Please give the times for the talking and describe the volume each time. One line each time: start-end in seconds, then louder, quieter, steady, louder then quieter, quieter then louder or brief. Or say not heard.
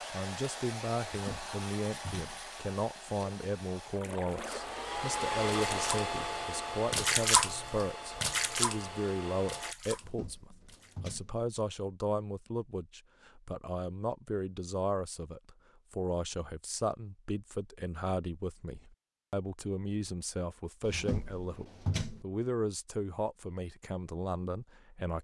0.1-25.1 steady.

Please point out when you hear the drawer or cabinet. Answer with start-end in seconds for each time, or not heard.
1.1-2.5, 9.9-11.3, 20.8-22.2.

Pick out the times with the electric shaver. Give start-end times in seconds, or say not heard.
not heard.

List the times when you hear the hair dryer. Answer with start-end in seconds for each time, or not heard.
0.0-9.8.